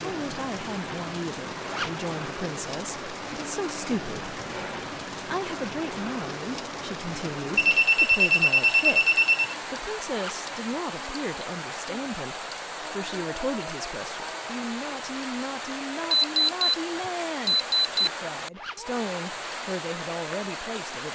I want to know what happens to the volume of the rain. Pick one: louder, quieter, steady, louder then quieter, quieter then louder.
steady.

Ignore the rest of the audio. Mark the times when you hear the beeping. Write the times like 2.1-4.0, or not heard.
4.3-4.8, 7.5-9.6, 16.1-16.8, 17.4-18.1.